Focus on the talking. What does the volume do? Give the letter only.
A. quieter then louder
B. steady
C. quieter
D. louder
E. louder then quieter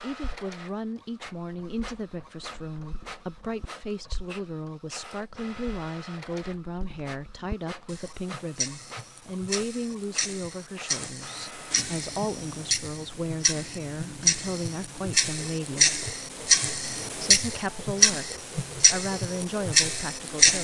B.